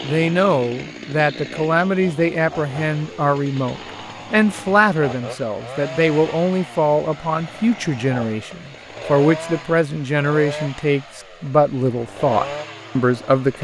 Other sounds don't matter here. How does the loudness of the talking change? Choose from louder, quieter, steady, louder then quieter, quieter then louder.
steady.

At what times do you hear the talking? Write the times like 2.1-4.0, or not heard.
0.0-13.5.